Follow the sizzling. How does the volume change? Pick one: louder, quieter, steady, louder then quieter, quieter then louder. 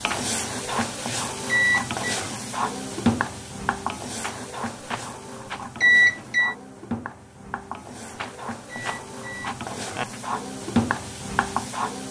quieter then louder.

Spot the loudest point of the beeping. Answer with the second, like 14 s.
6 s.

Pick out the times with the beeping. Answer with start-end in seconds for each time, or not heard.
1.4-1.9, 5.8-6.5, 8.7-10.1.